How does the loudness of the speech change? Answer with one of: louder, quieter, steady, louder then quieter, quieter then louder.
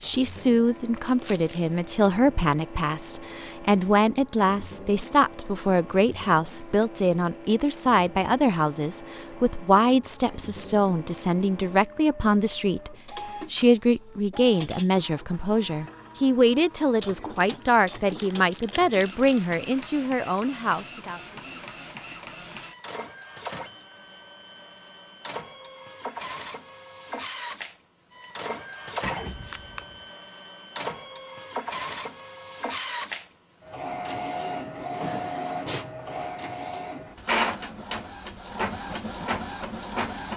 steady.